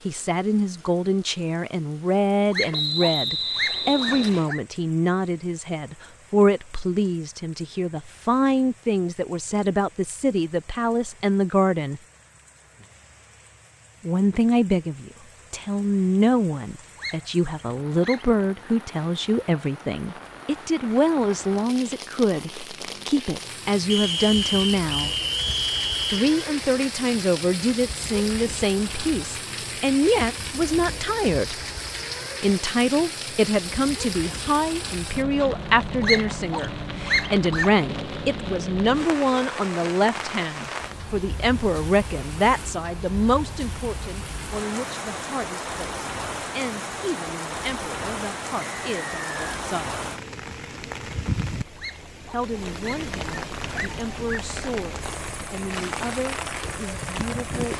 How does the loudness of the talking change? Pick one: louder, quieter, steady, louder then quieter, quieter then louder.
quieter.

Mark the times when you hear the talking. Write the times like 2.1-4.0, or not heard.
0.1-12.0, 14.1-25.1, 26.1-31.6, 32.4-50.0, 52.3-57.7.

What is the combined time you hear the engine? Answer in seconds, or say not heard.
3 s.